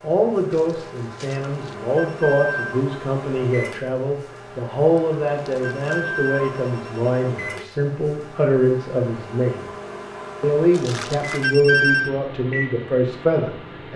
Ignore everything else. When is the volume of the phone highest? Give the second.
12 s.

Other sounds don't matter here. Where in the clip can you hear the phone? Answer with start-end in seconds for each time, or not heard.
1.9-2.9, 5.6-7.3, 11.4-12.1.